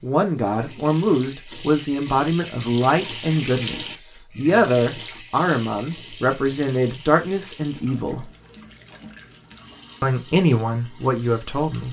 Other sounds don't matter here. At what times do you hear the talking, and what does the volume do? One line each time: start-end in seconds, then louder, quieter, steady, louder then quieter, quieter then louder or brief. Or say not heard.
0.0-8.3 steady
10.0-11.8 brief.